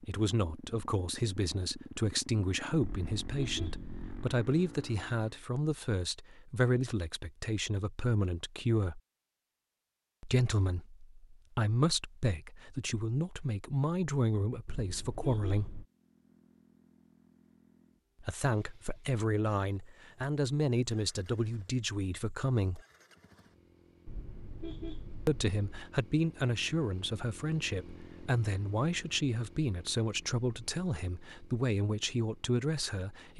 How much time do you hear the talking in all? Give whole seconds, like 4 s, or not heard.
27 s.